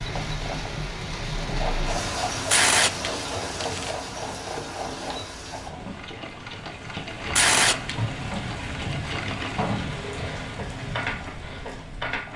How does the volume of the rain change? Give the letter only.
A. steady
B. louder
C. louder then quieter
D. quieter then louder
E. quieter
D.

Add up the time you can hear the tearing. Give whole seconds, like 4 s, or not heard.
2 s.